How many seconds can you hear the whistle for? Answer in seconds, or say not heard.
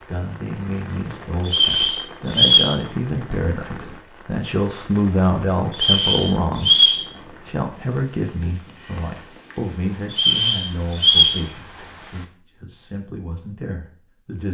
4 s.